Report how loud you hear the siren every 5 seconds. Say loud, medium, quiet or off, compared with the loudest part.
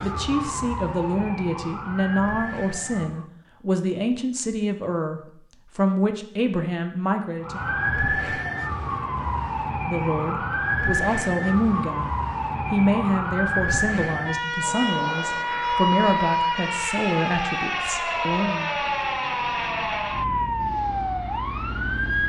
medium, loud, loud, loud, loud.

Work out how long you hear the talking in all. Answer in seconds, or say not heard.
17 s.